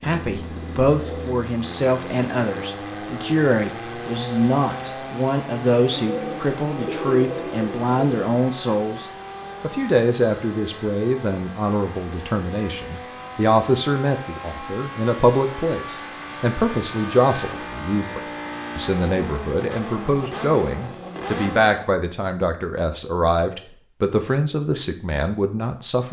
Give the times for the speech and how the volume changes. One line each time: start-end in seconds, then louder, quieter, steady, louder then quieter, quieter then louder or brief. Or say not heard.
0.0-26.0 steady.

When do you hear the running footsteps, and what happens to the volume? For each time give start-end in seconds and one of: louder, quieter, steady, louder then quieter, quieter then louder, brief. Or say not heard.
not heard.